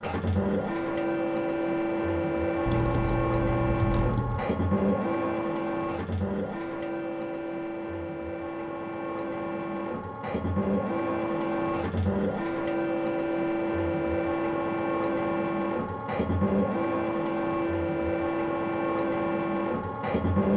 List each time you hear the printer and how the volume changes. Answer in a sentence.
The printer can be heard from 0.0 to 20.5 s, at a steady volume.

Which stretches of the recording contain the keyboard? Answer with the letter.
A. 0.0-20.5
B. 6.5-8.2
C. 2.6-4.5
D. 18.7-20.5
C.